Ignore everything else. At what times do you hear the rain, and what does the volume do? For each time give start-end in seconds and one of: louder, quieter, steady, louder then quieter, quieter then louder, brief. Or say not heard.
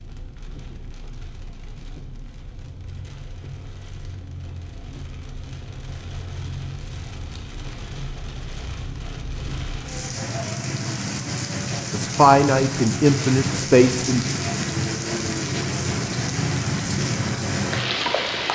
0.0-18.4 louder.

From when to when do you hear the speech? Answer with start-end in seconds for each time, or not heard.
11.9-14.2.